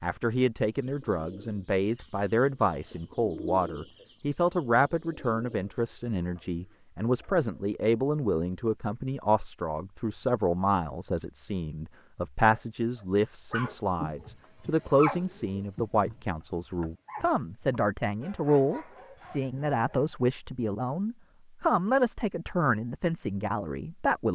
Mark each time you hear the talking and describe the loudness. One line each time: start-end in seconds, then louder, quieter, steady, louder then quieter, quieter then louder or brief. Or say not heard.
0.0-24.3 steady.